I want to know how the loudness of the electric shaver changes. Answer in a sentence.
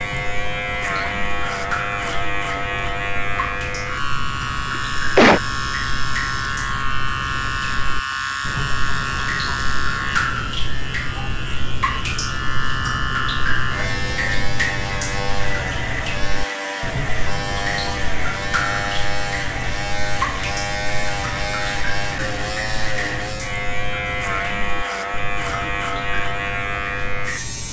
The loudness of the electric shaver stays about the same.